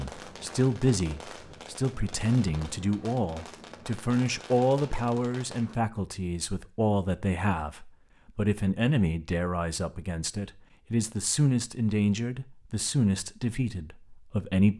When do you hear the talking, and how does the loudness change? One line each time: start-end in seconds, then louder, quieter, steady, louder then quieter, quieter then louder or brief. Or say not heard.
0.0-14.7 steady.